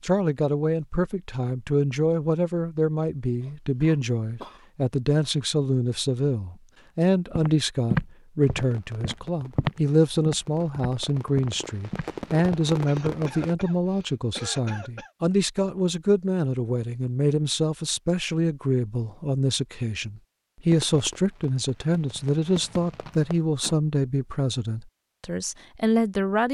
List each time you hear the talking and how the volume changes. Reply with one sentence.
The talking can be heard from 0.0 to 26.4 s, at a steady volume.